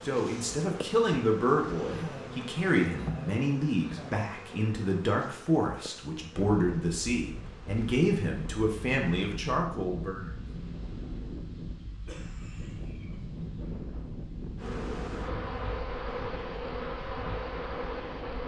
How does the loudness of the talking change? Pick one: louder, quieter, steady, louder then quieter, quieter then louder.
steady.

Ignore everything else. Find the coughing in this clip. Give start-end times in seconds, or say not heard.
1.8-4.2, 12.1-13.7.